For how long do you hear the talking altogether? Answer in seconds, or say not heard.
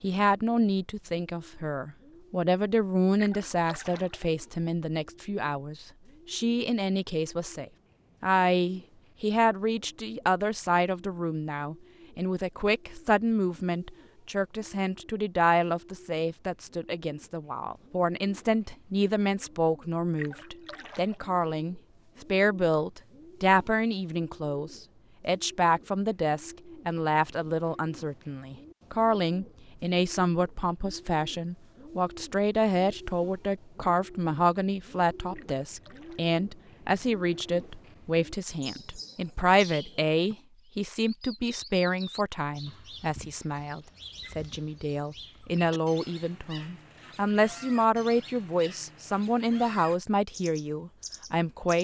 52 s.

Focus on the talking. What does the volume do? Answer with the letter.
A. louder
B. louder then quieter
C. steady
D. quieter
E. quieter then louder
C.